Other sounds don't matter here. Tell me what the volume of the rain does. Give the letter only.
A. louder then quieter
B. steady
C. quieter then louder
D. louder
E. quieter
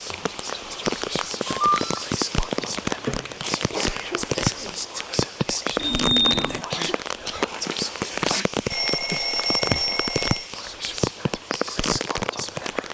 B.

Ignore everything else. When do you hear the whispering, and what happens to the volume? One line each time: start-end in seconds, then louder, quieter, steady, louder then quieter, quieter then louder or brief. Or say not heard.
0.0-8.4 steady
10.5-12.8 brief.